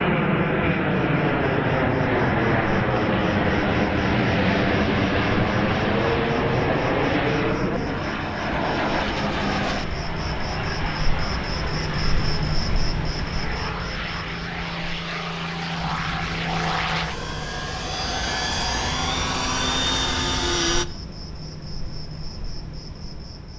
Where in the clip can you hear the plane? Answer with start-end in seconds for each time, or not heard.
0.0-20.9.